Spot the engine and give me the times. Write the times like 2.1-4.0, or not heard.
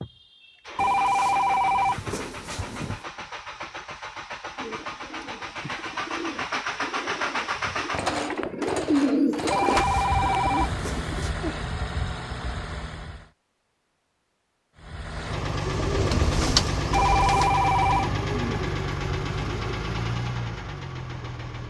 0.0-13.3, 14.8-21.6.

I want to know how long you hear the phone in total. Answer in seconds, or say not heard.
5 s.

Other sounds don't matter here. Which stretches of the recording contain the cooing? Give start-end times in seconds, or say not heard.
4.5-11.7, 15.3-19.8.